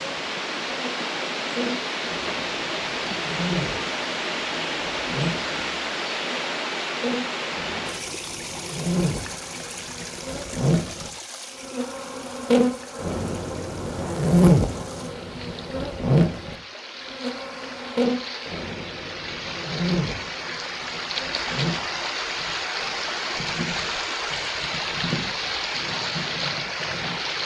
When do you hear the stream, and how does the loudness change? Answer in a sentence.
You can hear the stream from 0.0 to 27.4 s, getting quieter then louder.